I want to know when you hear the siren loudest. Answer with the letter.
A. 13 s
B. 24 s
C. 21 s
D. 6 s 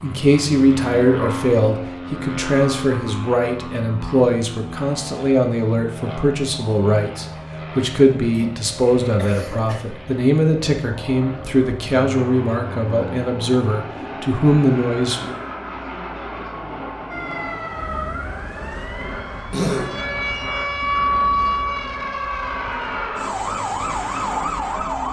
C.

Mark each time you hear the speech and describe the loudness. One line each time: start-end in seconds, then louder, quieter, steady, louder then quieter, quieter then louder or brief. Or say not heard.
0.0-15.3 steady.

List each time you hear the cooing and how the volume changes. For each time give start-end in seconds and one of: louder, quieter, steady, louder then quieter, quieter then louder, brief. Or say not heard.
not heard.